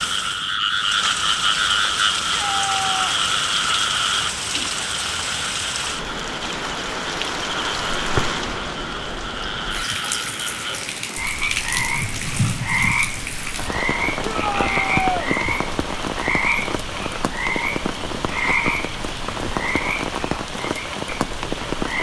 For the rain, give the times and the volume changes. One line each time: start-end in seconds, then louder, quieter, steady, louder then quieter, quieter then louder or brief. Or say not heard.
0.0-21.9 steady.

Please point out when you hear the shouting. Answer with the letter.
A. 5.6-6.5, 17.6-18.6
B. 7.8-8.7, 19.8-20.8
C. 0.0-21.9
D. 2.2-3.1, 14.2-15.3
D.